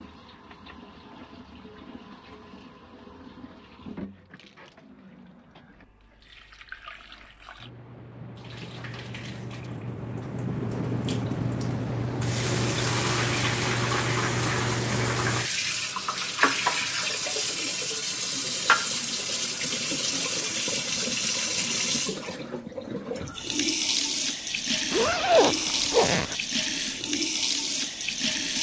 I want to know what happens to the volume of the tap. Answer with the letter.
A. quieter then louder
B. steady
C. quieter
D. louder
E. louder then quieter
D.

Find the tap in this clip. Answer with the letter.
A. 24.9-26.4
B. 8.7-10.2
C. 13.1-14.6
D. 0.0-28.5
D.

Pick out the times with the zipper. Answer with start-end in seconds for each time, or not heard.
24.9-26.4.